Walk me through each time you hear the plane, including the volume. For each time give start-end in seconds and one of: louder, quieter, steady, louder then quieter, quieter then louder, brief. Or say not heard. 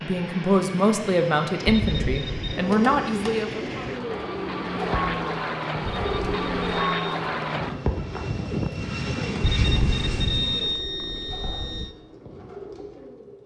0.0-10.8 louder.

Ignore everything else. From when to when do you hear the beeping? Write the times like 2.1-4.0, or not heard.
1.6-2.6, 5.8-7.0, 9.4-11.9.